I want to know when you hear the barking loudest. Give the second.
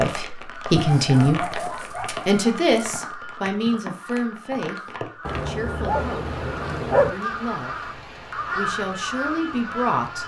7 s.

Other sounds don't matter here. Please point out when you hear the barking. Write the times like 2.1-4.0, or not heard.
0.7-3.0, 5.2-7.1.